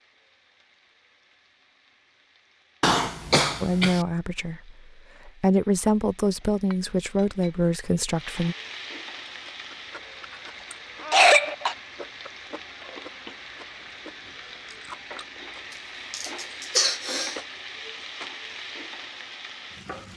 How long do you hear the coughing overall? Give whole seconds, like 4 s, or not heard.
3 s.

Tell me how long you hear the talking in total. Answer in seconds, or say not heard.
5 s.